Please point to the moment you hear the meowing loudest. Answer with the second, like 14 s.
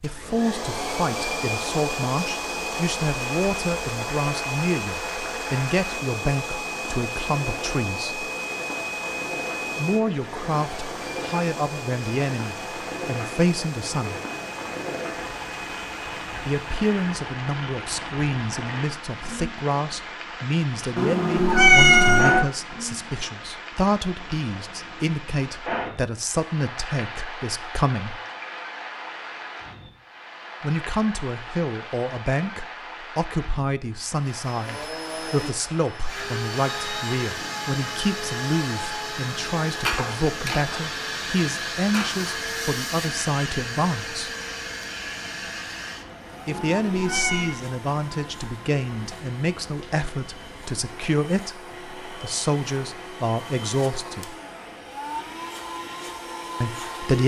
22 s.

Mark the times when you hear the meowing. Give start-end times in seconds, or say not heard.
20.9-22.4, 46.5-47.5.